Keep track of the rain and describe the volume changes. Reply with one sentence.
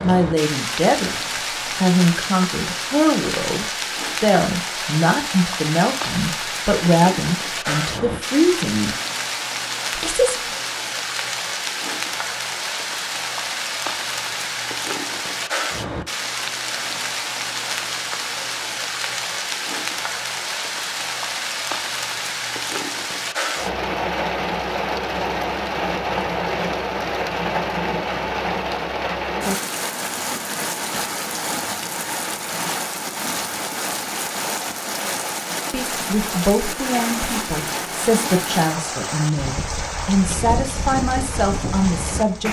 The volume of the rain stays about the same.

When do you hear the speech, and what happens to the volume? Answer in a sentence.
The speech can be heard from 0.0 to 8.9 s, at a steady volume; briefly from 9.9 to 10.3 s; and from 35.7 to 42.4 s, at a steady volume.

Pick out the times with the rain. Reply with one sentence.
The rain can be heard from 0.0 to 42.4 s.